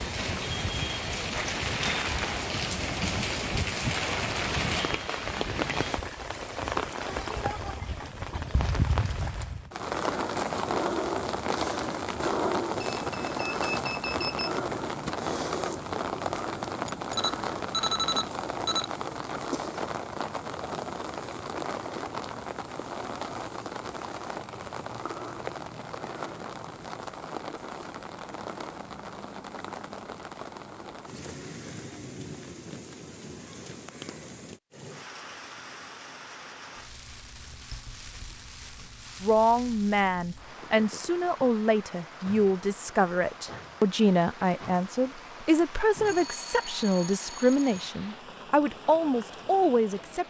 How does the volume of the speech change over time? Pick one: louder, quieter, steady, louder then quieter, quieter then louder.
steady.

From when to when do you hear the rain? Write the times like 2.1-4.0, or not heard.
0.0-50.2.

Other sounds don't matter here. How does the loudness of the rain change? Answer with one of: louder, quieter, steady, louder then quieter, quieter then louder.
quieter.